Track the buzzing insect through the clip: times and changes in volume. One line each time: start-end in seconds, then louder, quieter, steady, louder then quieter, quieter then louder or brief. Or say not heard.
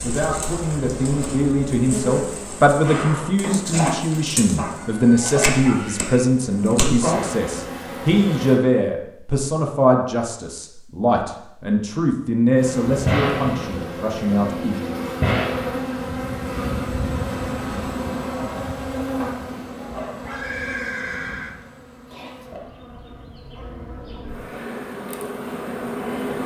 0.0-8.6 louder
12.6-26.4 quieter then louder.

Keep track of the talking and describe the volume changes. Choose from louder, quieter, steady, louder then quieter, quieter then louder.
steady.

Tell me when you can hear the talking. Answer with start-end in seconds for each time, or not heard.
0.0-14.9.